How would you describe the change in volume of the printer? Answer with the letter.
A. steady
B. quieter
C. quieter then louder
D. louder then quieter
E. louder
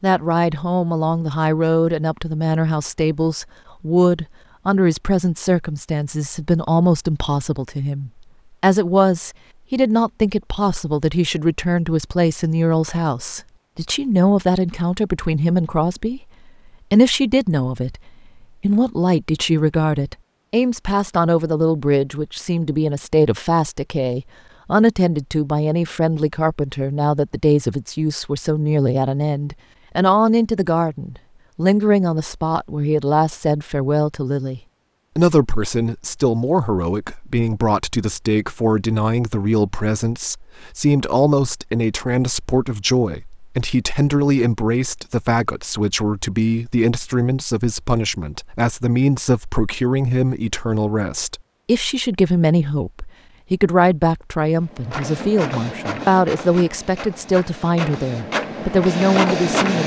C.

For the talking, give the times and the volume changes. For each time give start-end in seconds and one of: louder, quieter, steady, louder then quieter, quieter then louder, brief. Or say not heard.
0.0-16.2 steady
16.9-59.8 steady.